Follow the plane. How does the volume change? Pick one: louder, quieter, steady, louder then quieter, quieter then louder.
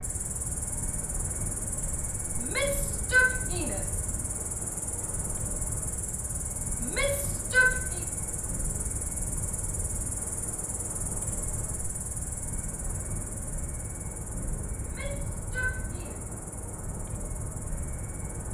steady.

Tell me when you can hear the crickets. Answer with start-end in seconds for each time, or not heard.
0.0-18.4.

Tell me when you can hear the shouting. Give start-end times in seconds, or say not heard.
2.4-4.0, 6.8-8.0, 14.8-16.2.